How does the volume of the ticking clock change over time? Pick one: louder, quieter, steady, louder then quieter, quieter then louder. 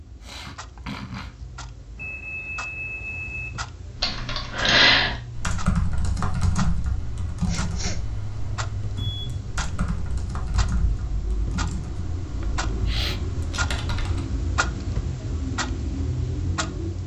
louder.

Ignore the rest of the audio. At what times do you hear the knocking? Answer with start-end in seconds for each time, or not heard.
not heard.